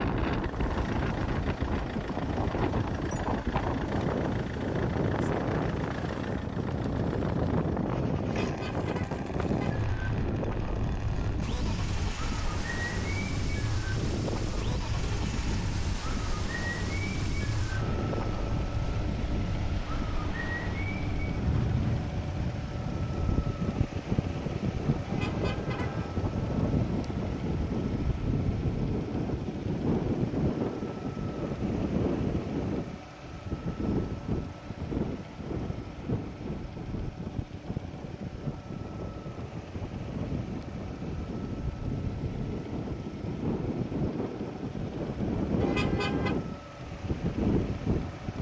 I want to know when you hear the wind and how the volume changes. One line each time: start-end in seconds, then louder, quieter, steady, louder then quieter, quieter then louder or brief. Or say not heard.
0.0-48.3 steady.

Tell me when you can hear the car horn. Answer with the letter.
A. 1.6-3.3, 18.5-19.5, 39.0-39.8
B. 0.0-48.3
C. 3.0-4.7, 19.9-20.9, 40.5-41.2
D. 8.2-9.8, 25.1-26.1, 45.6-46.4
D.